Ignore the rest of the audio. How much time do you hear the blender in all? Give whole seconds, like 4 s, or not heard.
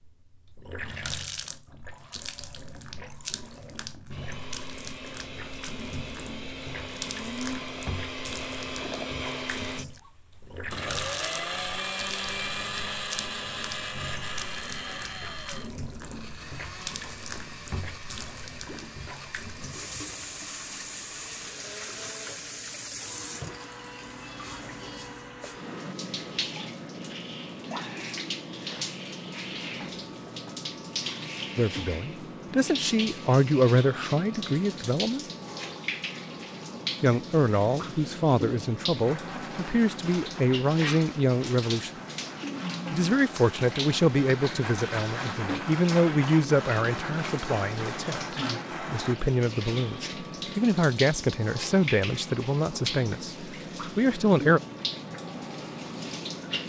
32 s.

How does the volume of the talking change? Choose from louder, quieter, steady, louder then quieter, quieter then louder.
steady.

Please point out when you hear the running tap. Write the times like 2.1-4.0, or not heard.
0.0-56.6.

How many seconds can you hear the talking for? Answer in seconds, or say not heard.
20 s.